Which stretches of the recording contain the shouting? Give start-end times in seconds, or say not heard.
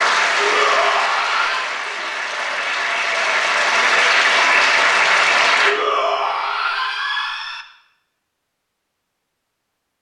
0.3-1.7, 5.7-7.7.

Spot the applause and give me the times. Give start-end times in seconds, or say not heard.
0.0-5.8.